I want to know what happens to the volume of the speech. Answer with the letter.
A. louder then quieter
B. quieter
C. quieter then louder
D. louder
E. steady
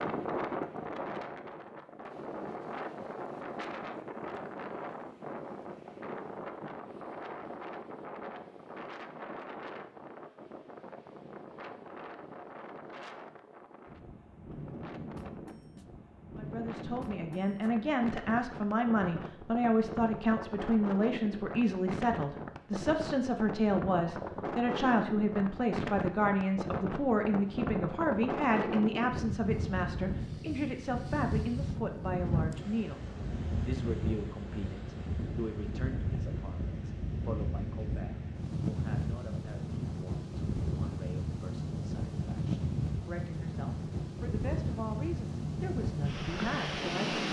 B.